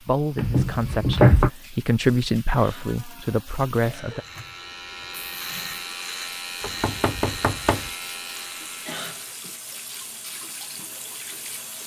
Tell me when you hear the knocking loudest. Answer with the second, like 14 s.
1 s.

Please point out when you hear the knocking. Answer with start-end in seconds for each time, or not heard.
0.3-1.5, 6.6-7.9.